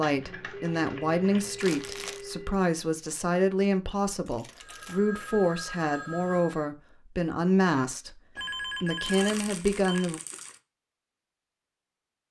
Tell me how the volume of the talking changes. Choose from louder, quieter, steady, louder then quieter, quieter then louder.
steady.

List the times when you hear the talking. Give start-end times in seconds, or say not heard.
0.0-10.2.